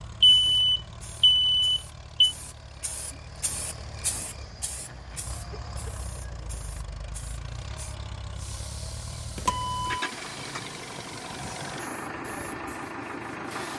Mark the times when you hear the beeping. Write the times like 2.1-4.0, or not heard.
0.2-2.4, 9.3-10.1.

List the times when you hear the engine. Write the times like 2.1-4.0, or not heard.
0.0-13.7.